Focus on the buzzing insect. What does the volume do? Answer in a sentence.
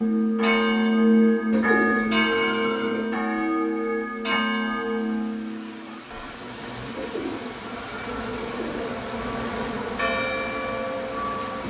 The loudness of the buzzing insect goes up, then down.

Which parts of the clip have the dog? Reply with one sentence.
You can't hear the dog here.